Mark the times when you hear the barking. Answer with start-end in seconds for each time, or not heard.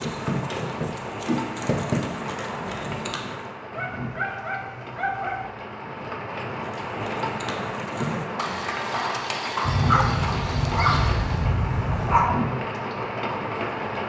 3.8-5.5, 9.7-12.3.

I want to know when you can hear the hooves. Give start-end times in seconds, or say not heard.
0.0-3.5, 6.6-11.4.